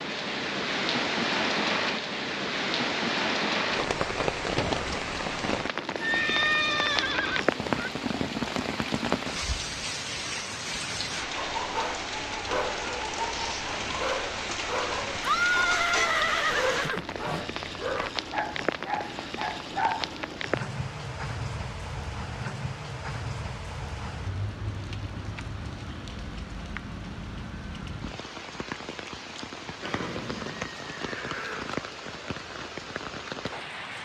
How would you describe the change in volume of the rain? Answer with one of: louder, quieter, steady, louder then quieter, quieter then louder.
quieter.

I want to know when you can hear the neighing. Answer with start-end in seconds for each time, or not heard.
6.0-7.9, 15.2-17.4, 29.8-31.8.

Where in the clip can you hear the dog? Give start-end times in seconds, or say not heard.
11.3-20.4.